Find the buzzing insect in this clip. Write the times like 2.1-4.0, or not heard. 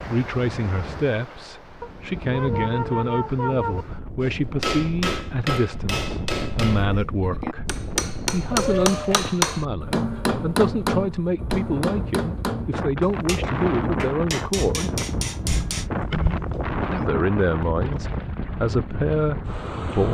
not heard.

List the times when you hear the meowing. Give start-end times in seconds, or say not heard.
1.8-3.9, 8.5-9.4, 15.4-17.1.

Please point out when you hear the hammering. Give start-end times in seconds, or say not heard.
4.2-15.8.